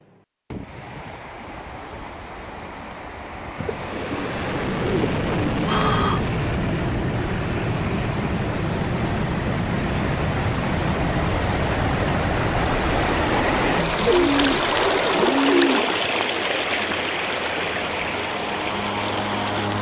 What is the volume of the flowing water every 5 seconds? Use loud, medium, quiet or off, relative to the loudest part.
quiet, medium, loud, loud.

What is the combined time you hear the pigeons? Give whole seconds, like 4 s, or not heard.
5 s.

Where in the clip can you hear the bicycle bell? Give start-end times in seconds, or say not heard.
not heard.